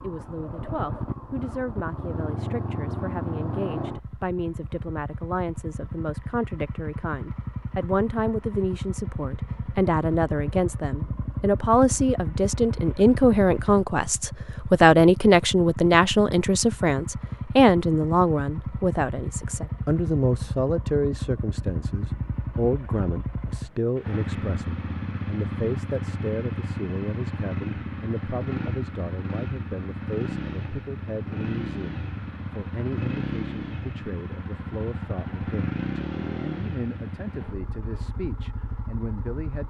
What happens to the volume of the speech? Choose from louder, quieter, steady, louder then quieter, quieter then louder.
louder then quieter.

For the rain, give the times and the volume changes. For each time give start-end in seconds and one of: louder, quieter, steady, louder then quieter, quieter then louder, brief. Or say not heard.
not heard.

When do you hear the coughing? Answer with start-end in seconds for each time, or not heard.
not heard.